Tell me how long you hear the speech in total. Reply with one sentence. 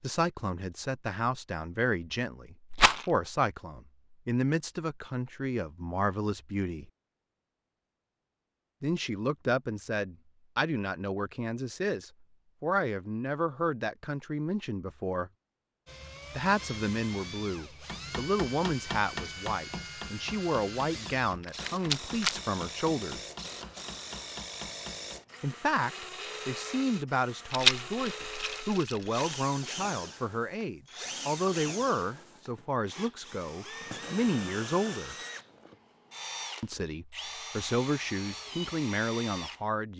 The speech can be heard for 33 seconds in total.